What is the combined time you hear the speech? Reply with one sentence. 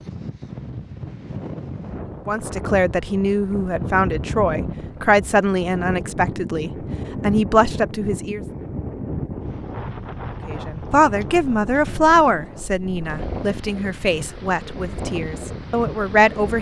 You can hear the speech for 12 seconds altogether.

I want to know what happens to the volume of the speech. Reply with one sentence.
The volume of the speech stays about the same.